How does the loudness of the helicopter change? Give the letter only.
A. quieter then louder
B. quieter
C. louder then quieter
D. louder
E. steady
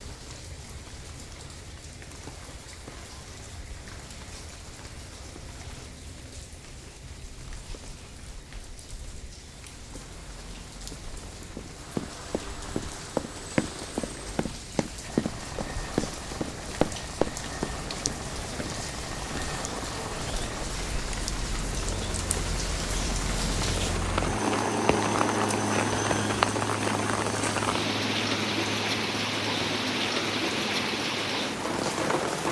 D.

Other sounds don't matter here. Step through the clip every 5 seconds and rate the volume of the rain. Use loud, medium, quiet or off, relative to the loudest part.
quiet, quiet, quiet, medium, medium, loud, loud.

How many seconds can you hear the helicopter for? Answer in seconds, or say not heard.
32 s.